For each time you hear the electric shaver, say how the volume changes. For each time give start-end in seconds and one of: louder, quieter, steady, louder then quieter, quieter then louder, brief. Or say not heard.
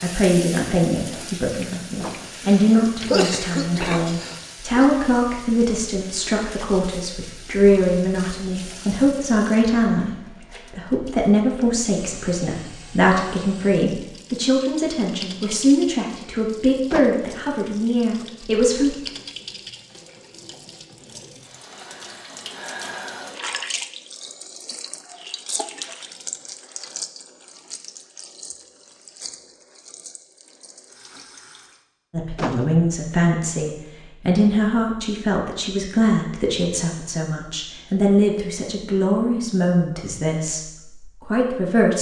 not heard.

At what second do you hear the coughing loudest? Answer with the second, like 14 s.
3 s.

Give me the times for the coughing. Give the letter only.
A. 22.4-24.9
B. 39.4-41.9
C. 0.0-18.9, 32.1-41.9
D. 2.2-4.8
D.